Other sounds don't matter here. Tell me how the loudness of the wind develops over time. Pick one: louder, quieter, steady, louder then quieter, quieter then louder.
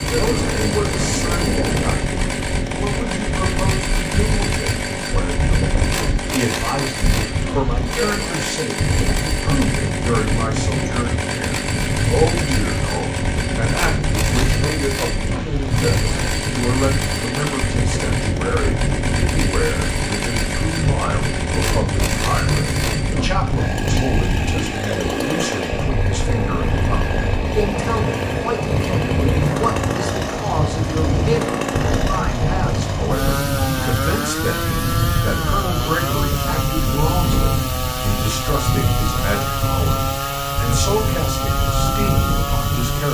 steady.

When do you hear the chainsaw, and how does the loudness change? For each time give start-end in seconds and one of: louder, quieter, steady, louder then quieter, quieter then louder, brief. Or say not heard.
0.0-43.0 steady.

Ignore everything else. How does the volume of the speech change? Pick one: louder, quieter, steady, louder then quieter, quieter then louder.
steady.